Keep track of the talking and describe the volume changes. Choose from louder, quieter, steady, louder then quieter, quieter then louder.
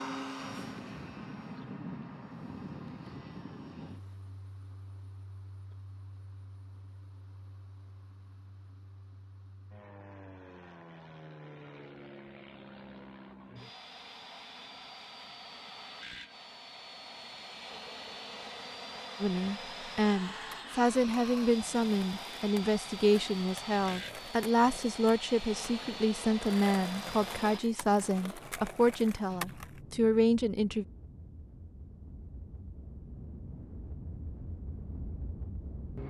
steady.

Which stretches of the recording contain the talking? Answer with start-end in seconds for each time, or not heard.
19.2-30.9.